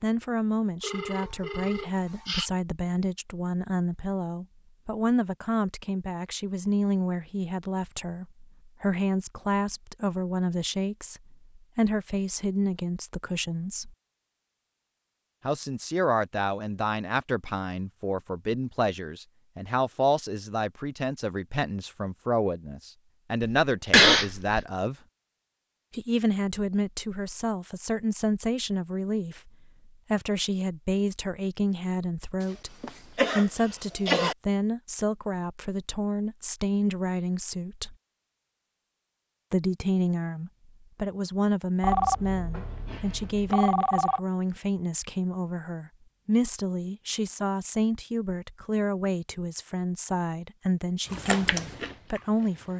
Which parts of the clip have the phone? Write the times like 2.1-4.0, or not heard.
0.8-2.5, 41.8-44.2.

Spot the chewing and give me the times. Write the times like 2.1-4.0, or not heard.
51.0-52.7.